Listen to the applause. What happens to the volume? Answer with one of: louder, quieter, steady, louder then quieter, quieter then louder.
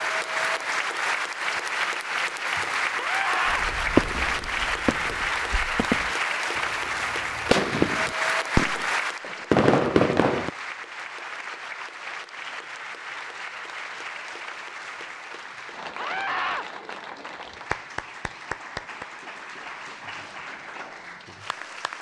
quieter.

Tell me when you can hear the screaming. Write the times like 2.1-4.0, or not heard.
3.0-3.6, 15.9-16.6.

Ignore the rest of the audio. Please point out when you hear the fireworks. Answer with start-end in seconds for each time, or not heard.
3.5-8.8, 9.5-10.5.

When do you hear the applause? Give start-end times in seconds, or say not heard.
0.0-21.9.